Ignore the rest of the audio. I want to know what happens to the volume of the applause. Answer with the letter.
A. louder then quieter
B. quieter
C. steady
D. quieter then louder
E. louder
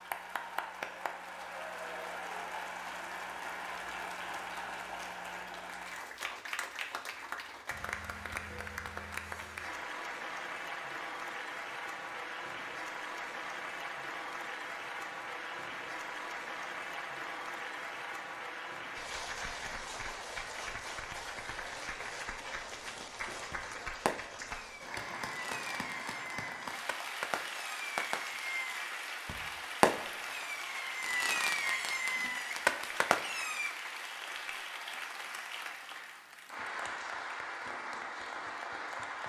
C.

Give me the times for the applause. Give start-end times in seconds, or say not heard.
0.0-39.2.